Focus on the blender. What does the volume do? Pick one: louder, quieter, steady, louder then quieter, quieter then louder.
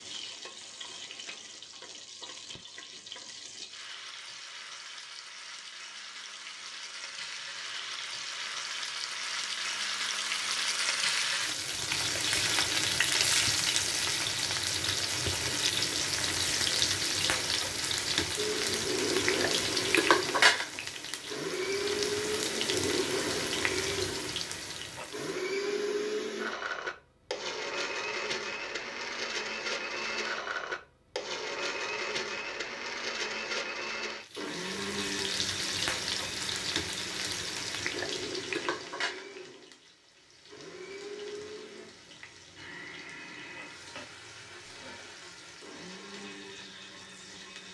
quieter.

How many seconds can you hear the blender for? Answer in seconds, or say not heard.
29 s.